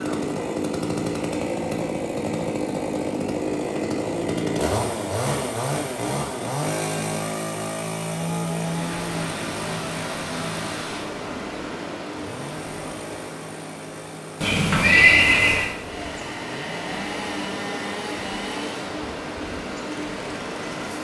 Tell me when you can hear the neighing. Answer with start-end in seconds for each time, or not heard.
14.4-15.7.